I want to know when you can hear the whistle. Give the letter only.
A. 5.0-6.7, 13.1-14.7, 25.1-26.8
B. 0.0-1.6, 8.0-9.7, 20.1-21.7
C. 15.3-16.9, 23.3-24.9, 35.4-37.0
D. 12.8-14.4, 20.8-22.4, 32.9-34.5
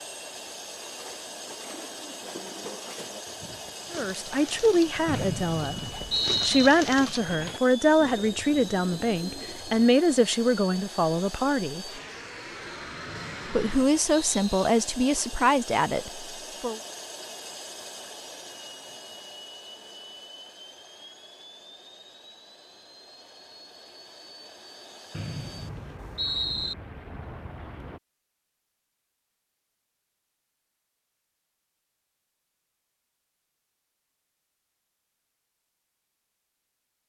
A.